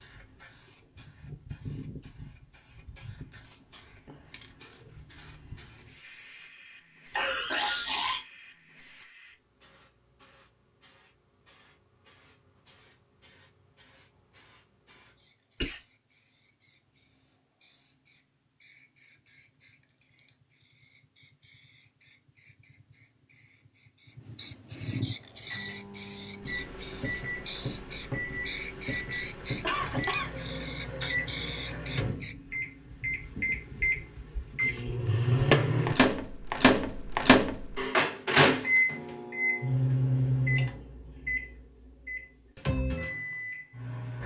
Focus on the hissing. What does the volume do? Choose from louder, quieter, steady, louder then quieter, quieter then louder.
quieter then louder.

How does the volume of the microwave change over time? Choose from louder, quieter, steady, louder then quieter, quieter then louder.
louder then quieter.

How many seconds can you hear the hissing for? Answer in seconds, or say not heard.
32 s.